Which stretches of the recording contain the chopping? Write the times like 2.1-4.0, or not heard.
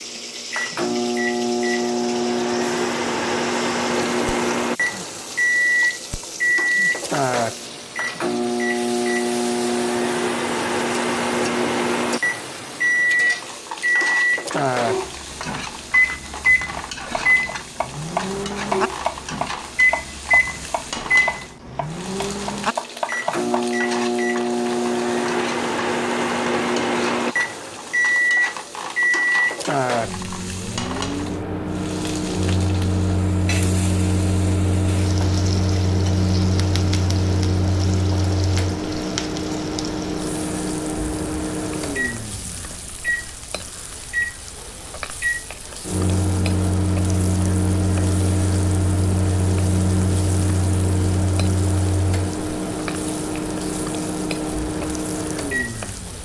15.9-23.5.